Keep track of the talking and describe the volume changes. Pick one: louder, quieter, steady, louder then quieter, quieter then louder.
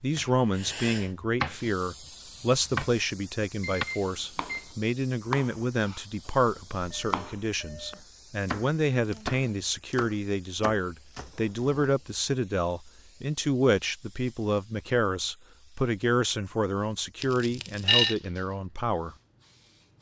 steady.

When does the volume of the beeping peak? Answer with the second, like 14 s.
18 s.